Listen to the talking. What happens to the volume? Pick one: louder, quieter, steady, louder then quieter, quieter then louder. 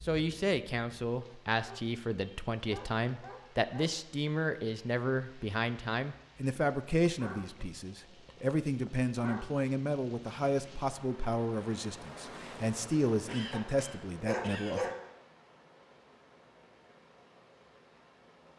steady.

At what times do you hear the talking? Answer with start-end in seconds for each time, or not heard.
0.0-14.9.